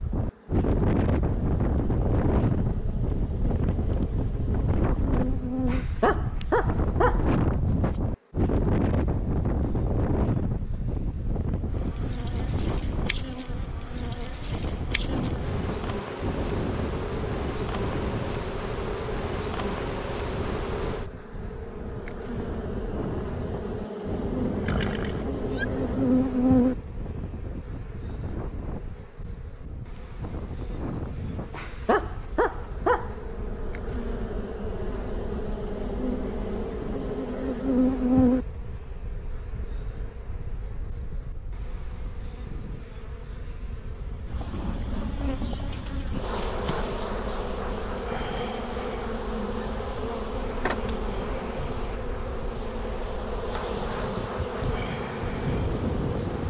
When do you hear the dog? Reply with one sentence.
You can hear the dog from 5.7 to 7.3 s and from 31.5 to 33.1 s.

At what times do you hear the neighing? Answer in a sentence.
The neighing can be heard from 24.6 to 25.6 s.